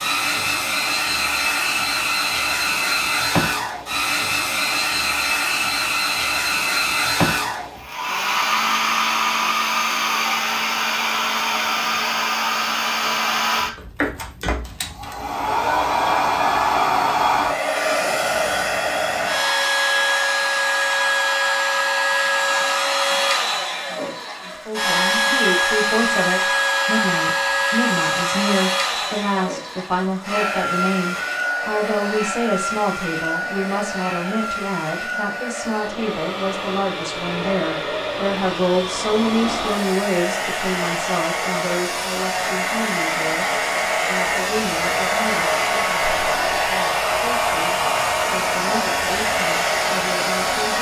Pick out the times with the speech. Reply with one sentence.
You can hear the speech from 24.6 to 50.7 s.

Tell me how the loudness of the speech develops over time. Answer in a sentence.
The loudness of the speech goes down.